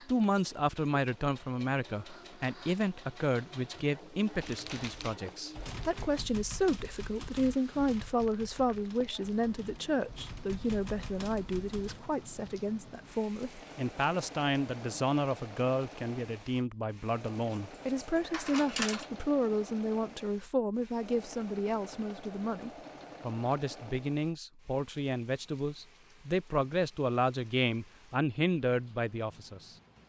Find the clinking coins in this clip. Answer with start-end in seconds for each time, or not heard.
17.5-19.1.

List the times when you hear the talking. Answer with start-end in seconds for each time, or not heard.
0.1-29.8.